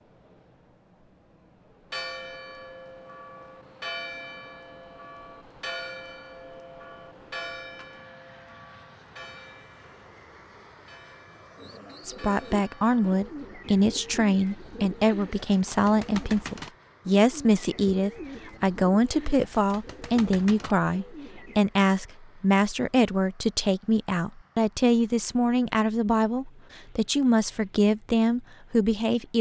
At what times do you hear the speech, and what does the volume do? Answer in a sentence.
The speech can be heard from 12.1 to 29.3 s, at a steady volume.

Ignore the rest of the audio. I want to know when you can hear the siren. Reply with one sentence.
You can't hear the siren here.